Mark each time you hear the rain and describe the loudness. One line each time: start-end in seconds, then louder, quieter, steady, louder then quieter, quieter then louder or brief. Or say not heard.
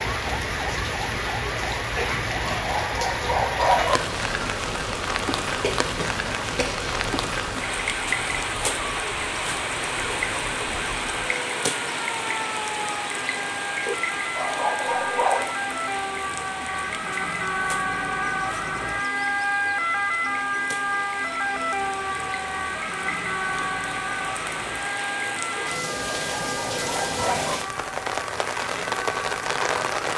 0.0-30.1 quieter then louder.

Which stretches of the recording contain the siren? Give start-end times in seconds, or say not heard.
0.0-30.1.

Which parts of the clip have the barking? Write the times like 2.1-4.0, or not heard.
1.9-4.0, 13.8-15.6, 25.6-27.6.